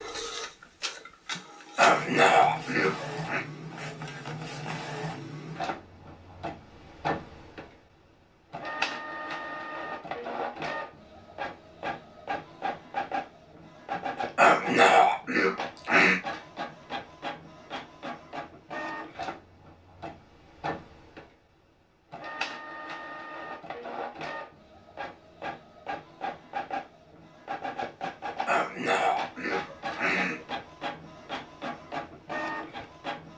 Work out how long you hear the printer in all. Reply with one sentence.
The printer can be heard for 33 seconds in total.